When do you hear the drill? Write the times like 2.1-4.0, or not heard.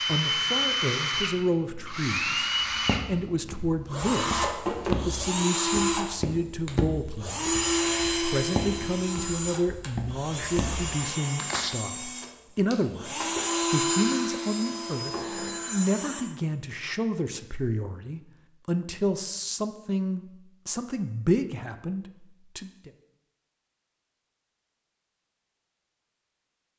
0.0-16.2.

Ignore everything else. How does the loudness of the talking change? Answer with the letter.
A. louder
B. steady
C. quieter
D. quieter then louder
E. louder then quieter
B.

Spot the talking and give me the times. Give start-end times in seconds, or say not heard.
0.0-22.9.